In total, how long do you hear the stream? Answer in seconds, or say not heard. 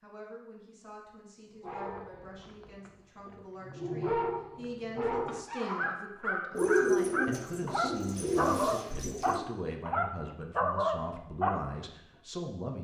not heard.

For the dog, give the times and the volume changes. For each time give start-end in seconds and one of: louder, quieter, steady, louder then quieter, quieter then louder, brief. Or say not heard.
1.6-11.8 louder.